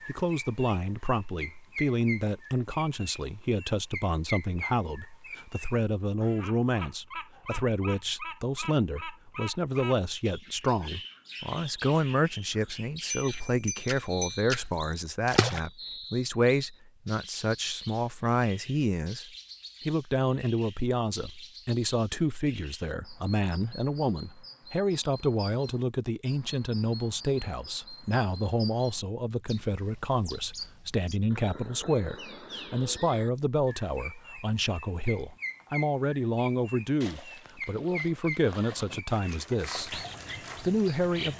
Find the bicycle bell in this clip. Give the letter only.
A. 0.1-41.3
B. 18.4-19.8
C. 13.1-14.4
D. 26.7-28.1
C.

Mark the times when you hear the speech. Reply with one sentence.
You can hear the speech from 0.1 to 41.3 s.